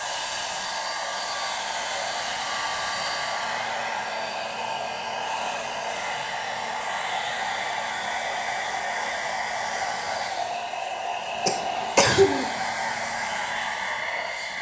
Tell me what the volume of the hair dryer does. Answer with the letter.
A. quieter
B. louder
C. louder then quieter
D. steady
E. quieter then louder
D.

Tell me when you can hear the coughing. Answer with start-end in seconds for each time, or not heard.
11.4-12.4.